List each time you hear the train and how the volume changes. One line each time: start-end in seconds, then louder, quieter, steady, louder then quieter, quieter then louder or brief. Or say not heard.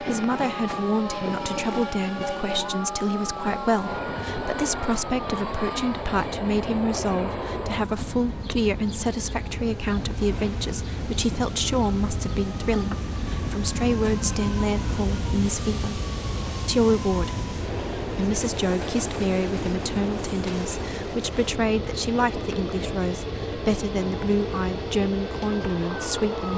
0.0-26.5 steady.